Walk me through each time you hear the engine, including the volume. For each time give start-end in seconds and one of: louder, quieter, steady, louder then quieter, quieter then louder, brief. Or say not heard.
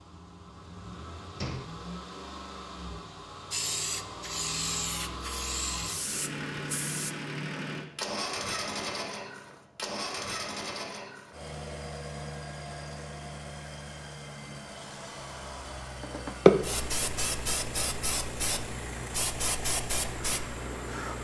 0.0-21.1 louder then quieter.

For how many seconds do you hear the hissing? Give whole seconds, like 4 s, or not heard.
9 s.